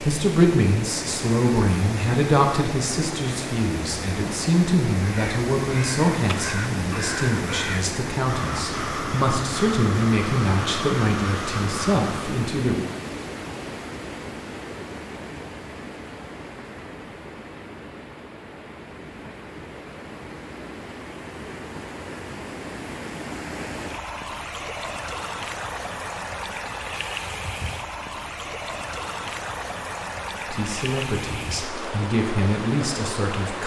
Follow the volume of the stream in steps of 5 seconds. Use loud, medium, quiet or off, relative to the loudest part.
loud, loud, loud, medium, loud, loud, loud.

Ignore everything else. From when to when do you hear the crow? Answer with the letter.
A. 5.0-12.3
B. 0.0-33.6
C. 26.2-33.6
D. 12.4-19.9
A.